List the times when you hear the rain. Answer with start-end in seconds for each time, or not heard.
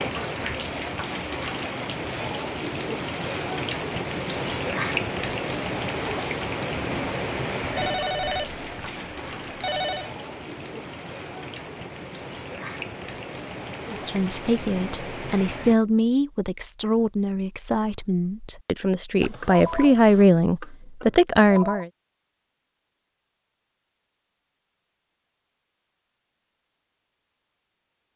0.0-15.8.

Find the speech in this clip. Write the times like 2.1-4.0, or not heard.
13.9-21.9.